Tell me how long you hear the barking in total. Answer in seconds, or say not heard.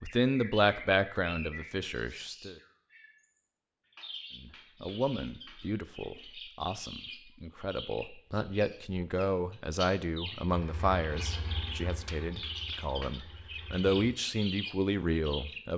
not heard.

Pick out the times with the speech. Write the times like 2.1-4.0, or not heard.
0.0-2.5, 4.4-15.7.